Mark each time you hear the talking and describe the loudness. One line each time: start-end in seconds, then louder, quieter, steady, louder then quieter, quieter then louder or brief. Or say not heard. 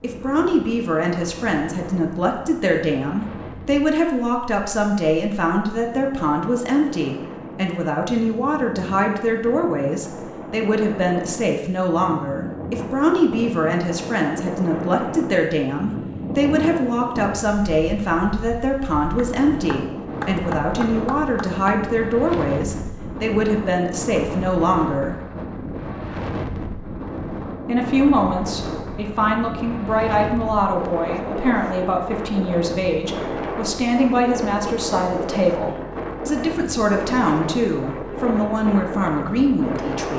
0.0-25.1 steady
27.6-40.1 steady.